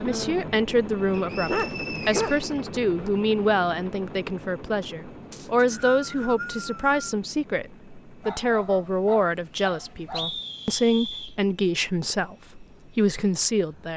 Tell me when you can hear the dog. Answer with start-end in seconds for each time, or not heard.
1.4-2.4, 8.2-10.3.